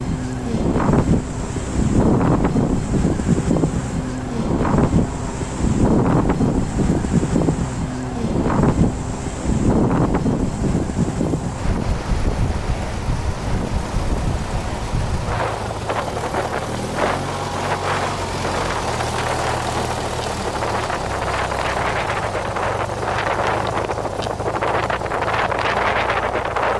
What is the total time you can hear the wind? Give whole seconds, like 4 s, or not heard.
27 s.